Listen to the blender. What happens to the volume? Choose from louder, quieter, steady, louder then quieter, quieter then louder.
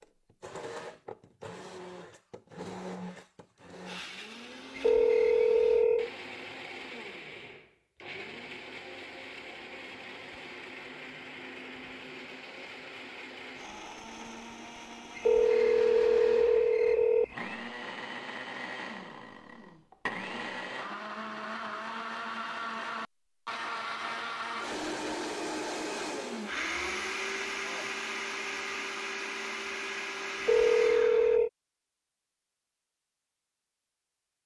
louder.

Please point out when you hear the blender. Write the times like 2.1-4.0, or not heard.
0.0-31.4.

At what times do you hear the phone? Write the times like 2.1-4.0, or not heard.
4.8-6.1, 15.2-17.3, 30.4-31.5.